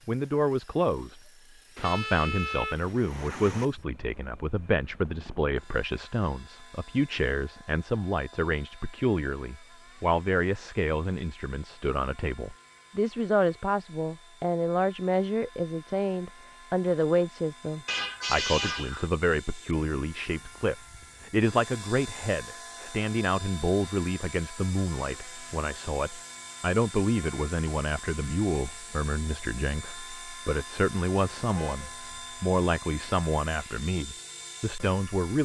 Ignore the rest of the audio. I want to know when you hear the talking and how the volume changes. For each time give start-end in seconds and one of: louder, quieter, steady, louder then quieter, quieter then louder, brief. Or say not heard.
0.1-35.4 steady.